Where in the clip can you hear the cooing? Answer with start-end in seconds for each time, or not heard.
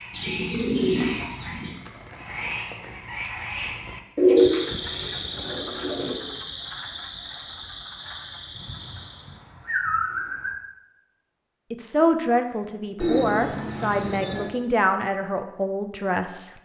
0.1-1.8, 4.2-6.2, 8.6-10.6, 13.0-14.5.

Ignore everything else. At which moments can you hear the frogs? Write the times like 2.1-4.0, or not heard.
0.0-9.4.